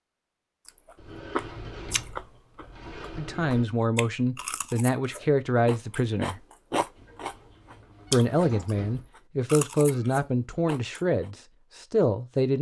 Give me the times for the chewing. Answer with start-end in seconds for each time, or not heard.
0.7-11.3.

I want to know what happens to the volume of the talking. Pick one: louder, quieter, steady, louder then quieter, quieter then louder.
steady.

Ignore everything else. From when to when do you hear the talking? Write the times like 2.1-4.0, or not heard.
3.1-6.4, 8.1-12.5.